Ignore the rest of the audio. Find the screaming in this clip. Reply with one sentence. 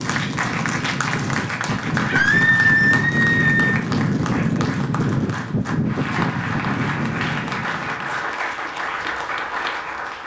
You can hear the screaming from 2.0 to 3.8 s.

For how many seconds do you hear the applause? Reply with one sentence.
You can hear the applause for 10 seconds altogether.